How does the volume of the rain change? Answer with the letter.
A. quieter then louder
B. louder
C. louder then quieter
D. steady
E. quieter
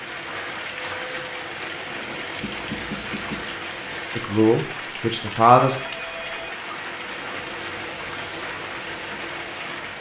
D.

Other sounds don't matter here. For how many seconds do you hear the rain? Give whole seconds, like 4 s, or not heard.
10 s.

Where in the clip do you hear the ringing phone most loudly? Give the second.
3 s.